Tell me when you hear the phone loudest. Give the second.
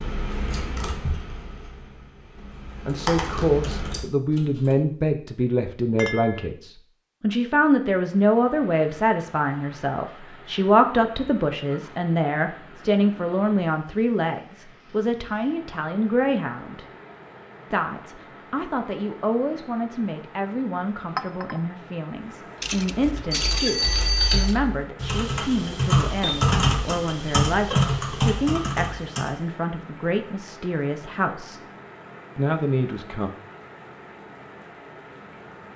24 s.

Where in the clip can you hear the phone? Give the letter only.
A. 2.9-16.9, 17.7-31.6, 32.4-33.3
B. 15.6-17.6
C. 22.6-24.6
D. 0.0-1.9
C.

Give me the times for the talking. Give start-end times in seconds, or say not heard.
2.9-16.9, 17.7-31.6, 32.4-33.3.